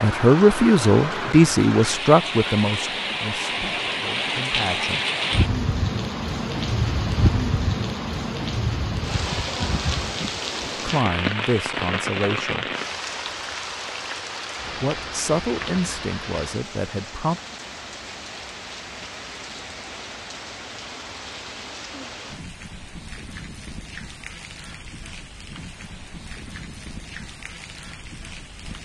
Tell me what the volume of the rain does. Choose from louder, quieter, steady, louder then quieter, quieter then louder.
quieter.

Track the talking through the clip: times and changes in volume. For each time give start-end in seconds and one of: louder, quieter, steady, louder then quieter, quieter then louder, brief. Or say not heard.
0.0-5.0 quieter
10.8-12.7 brief
14.8-17.4 brief.